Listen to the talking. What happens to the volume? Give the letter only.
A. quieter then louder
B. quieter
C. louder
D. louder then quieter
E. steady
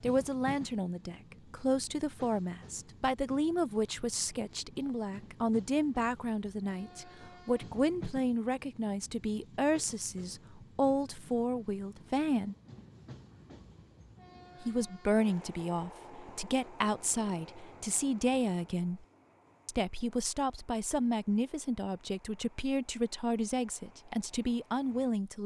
E.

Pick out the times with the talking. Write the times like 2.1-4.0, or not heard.
0.0-12.6, 14.6-19.1, 19.6-25.4.